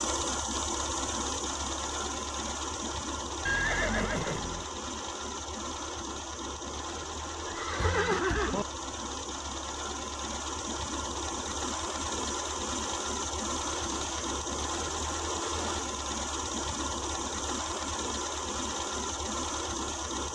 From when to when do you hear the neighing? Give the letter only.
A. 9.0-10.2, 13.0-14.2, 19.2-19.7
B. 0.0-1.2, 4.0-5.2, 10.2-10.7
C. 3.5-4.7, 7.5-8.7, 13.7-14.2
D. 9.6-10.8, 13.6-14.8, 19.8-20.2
C.